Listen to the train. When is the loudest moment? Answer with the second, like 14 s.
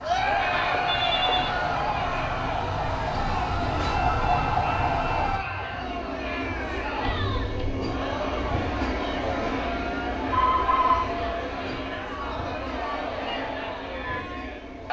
9 s.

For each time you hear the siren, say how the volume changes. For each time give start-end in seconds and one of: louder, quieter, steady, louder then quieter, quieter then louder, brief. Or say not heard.
0.0-5.4 louder.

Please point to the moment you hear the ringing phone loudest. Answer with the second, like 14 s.
11 s.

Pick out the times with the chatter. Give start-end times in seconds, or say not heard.
0.0-14.8.